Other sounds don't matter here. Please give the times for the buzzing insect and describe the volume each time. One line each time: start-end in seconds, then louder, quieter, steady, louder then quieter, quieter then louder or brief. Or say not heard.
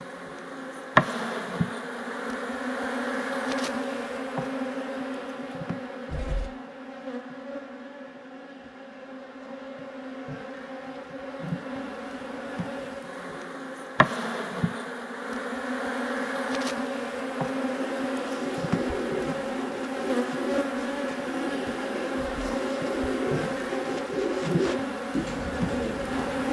0.0-26.4 quieter then louder.